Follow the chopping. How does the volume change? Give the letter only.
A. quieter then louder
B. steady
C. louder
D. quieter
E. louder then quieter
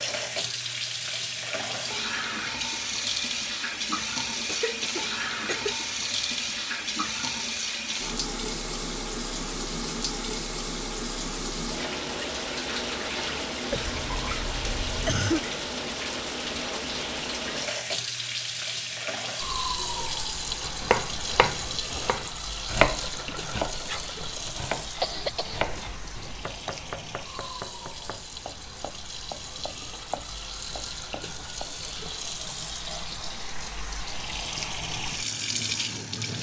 D.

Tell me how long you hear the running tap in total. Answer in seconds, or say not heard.
36 s.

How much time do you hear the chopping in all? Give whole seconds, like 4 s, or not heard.
11 s.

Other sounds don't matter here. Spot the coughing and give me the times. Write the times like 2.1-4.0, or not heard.
4.3-5.8, 13.7-15.5, 25.0-26.7.